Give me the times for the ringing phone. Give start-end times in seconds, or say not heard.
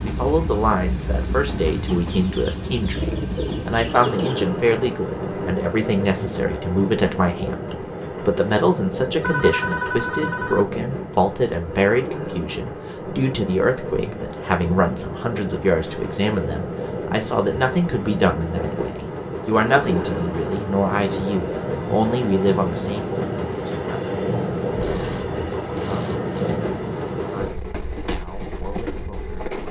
9.2-10.7, 24.8-26.6.